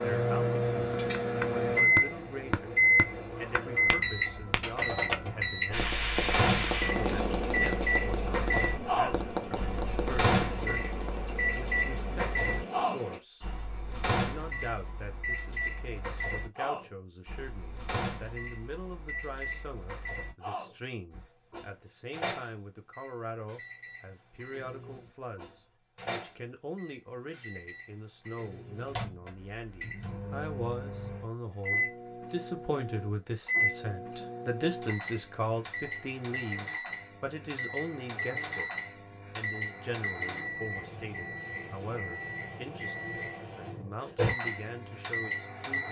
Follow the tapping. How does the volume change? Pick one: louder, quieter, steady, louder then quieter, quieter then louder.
quieter.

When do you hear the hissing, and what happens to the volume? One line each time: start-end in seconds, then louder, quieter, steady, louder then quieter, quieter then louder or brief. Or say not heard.
5.7-13.2 quieter.